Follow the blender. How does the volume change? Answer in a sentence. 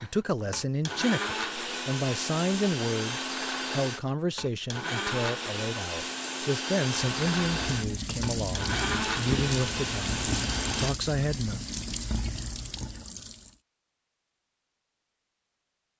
The volume of the blender stays about the same.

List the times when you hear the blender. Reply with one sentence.
The blender can be heard from 0.0 to 10.9 s.